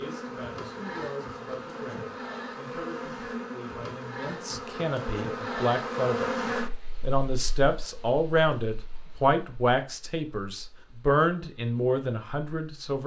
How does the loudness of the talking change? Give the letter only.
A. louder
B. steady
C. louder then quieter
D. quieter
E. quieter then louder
A.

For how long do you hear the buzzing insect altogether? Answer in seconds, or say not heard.
13 s.